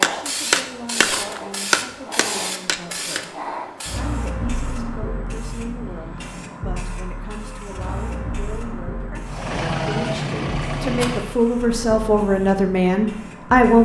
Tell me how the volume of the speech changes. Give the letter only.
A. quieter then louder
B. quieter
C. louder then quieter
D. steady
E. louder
E.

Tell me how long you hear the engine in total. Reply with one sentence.
The engine can be heard for 2 seconds in total.